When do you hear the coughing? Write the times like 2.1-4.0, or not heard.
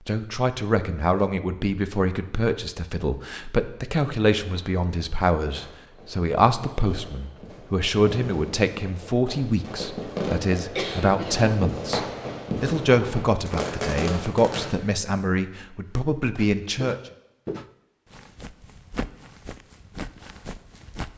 10.8-11.5.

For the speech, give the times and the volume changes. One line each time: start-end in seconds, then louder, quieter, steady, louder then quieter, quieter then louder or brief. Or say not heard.
0.1-16.9 steady.